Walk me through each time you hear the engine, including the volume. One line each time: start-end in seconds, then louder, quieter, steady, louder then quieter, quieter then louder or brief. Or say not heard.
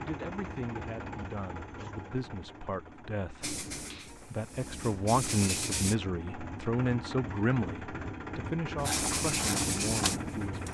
0.0-10.6 quieter then louder.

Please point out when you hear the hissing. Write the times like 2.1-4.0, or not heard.
3.4-6.0, 8.8-10.6.